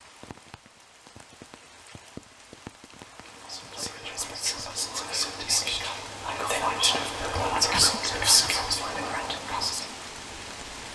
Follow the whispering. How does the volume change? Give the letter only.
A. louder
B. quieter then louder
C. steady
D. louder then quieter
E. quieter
A.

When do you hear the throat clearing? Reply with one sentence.
You can hear the throat clearing from 7.7 to 8.6 s.